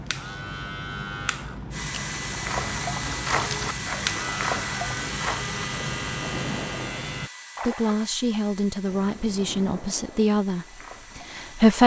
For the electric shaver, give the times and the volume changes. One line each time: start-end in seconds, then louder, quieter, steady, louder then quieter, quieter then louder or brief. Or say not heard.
0.0-7.3 steady.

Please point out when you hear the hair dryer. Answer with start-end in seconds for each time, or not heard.
1.7-11.8.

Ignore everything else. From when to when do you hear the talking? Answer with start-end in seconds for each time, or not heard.
7.7-11.8.